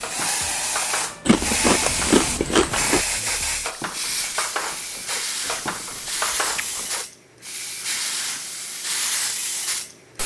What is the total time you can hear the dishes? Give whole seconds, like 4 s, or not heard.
7 s.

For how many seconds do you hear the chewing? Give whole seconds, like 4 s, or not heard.
3 s.